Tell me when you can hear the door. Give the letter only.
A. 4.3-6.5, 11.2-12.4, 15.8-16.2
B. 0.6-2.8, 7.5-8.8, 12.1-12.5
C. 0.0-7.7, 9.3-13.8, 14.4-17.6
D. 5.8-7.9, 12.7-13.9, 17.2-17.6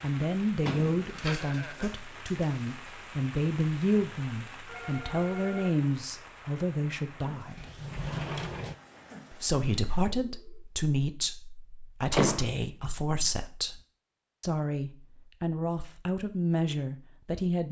B.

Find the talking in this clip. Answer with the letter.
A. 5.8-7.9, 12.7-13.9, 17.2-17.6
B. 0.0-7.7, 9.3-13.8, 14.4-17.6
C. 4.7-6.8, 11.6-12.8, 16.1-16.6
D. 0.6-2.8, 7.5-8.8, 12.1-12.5
B.